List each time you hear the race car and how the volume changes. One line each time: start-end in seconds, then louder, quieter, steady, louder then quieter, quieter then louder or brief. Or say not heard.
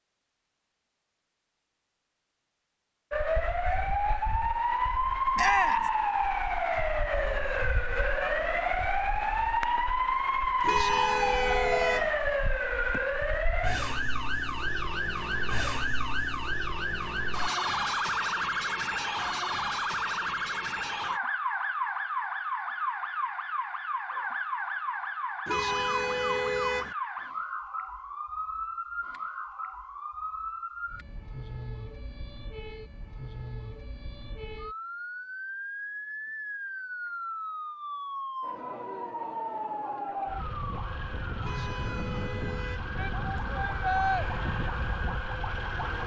not heard.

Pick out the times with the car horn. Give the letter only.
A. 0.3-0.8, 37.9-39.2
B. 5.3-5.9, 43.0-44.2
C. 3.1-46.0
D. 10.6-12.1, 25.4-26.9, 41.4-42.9
D.